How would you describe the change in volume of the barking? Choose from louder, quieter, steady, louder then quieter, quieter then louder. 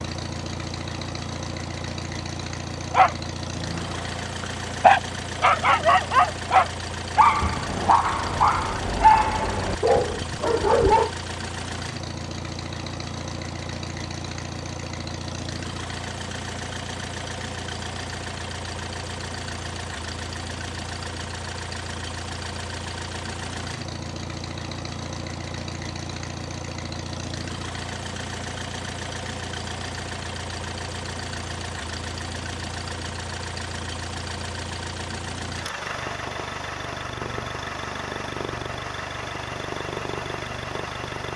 louder then quieter.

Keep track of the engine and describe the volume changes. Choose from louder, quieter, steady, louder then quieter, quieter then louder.
steady.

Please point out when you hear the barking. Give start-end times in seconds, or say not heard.
2.9-11.1.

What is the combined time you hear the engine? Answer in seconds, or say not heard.
41 s.